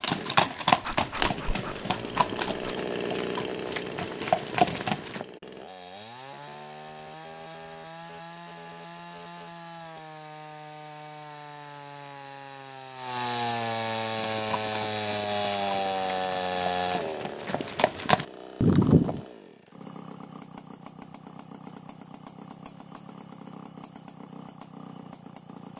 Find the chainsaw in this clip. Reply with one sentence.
The chainsaw can be heard from 0.0 to 25.7 s.